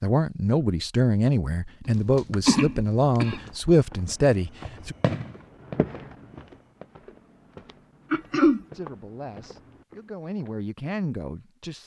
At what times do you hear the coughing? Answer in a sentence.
You can hear the coughing from 1.9 to 3.5 s and from 8.1 to 8.7 s.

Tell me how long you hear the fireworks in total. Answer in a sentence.
The fireworks can be heard for 3 seconds in total.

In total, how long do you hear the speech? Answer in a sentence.
The speech can be heard for 8 seconds in total.